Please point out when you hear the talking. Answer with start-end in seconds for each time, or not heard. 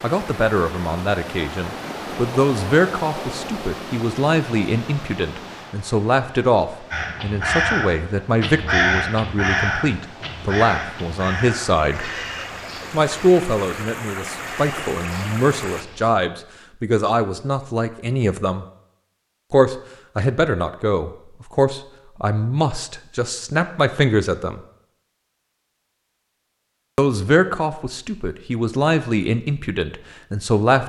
0.0-12.1, 12.9-18.6, 19.5-24.6, 26.9-30.8.